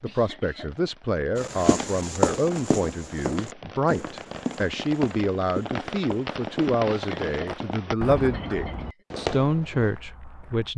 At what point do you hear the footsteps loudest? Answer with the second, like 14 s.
2 s.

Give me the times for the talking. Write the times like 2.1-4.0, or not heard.
0.0-10.7.